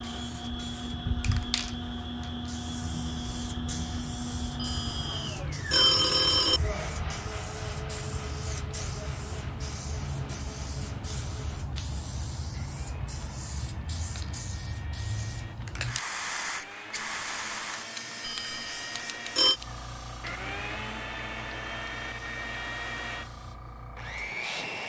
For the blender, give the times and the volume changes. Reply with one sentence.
The blender can be heard from 0.0 to 24.8 s, getting quieter then louder.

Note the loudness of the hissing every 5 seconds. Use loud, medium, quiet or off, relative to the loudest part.
loud, loud, loud, loud, medium.